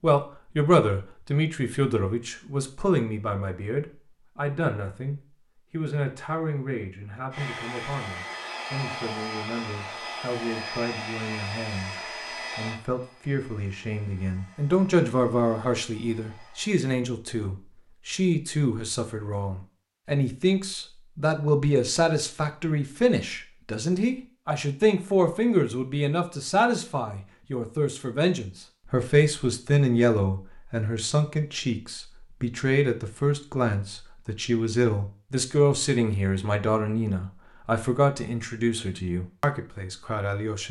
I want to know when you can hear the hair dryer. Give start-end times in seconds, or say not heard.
7.3-16.8.